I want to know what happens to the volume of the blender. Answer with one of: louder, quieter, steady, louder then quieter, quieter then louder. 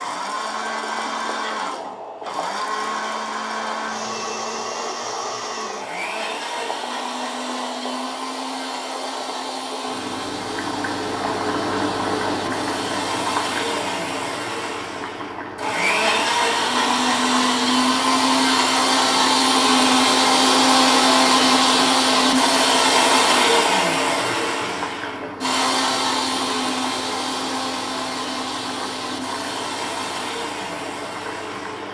louder then quieter.